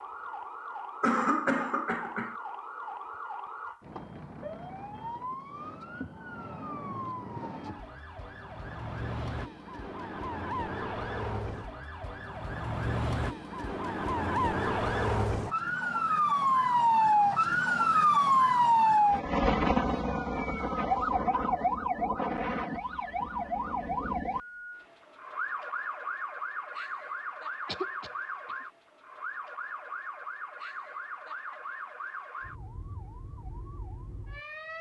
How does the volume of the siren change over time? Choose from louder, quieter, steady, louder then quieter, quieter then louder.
louder then quieter.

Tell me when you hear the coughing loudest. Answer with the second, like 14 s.
1 s.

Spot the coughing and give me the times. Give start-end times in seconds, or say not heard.
1.0-2.4, 27.6-28.6.